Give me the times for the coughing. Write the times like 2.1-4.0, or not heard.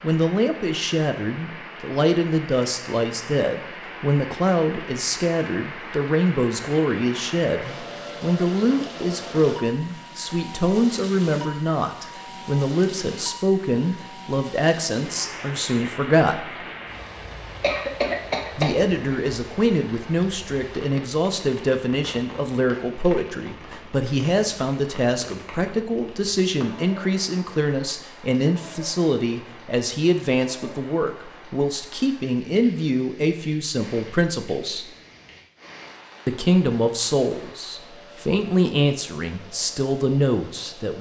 17.6-19.1.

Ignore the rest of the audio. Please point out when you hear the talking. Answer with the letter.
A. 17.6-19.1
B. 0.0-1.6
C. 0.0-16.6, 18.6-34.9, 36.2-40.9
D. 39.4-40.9
C.